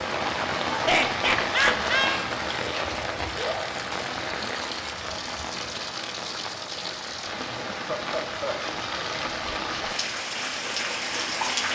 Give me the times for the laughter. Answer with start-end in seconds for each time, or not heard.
0.8-2.2, 7.5-8.6.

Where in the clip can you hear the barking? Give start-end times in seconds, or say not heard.
not heard.